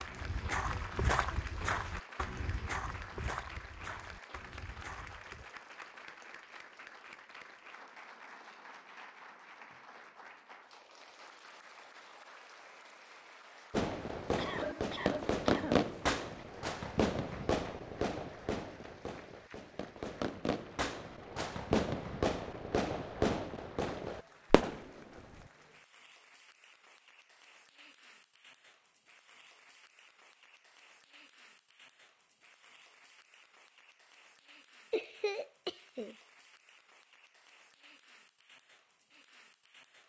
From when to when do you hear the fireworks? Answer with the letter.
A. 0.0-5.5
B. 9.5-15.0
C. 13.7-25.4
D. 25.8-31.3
C.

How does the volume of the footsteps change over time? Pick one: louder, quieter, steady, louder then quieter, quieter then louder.
quieter.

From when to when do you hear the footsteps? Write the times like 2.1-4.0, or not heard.
0.0-5.5.